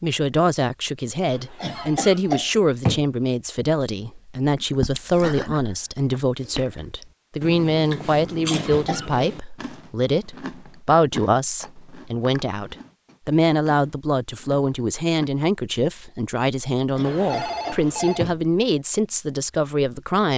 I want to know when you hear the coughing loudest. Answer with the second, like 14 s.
3 s.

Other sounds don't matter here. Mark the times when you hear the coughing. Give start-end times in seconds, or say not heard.
1.6-3.0, 8.5-9.1, 16.9-18.4.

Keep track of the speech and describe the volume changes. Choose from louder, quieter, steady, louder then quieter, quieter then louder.
steady.